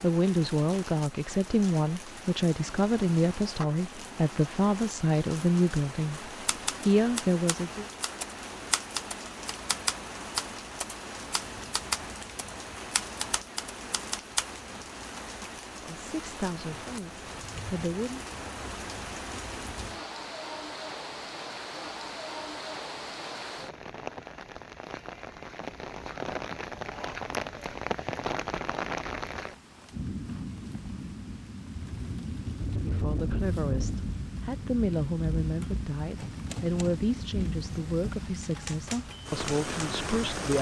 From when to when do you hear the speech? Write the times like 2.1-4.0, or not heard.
0.0-7.8, 15.8-18.2, 32.8-40.5.